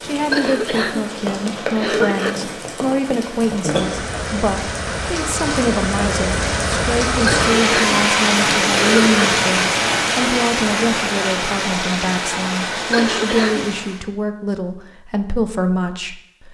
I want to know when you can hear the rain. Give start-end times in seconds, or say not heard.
0.0-14.1.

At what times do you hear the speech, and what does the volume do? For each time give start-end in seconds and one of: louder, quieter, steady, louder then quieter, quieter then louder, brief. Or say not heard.
0.0-16.4 steady.